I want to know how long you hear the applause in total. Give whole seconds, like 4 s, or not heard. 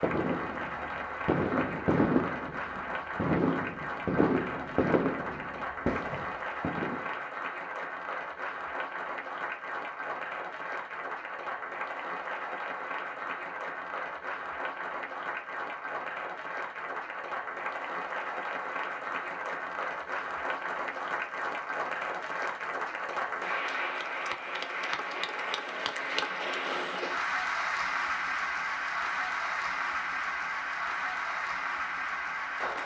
33 s.